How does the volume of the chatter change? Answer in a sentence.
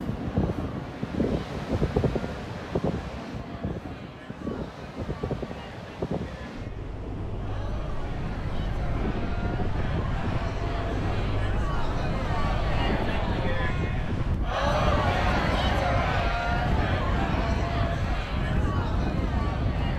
The volume of the chatter goes up.